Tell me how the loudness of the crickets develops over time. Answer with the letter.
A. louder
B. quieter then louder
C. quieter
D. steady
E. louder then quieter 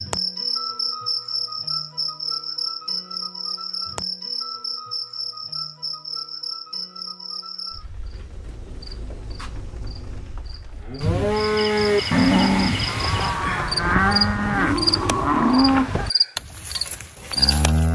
B.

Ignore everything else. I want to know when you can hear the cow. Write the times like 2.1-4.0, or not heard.
10.8-17.9.